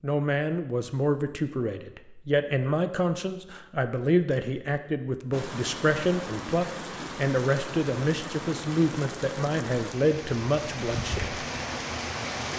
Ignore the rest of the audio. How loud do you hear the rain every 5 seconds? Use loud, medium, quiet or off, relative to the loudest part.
off, loud, loud.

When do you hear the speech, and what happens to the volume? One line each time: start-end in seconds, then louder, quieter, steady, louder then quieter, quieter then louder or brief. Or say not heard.
0.0-11.4 steady.